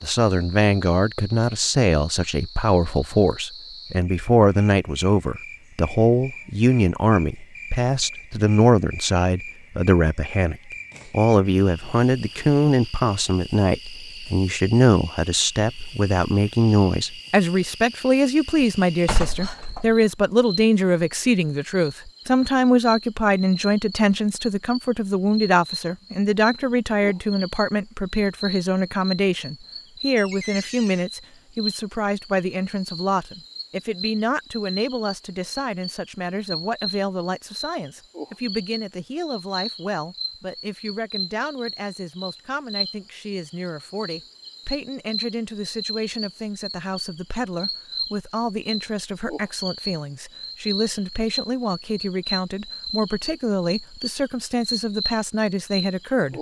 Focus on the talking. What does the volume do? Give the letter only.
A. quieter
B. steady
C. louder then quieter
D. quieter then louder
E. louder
A.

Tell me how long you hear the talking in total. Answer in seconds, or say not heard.
56 s.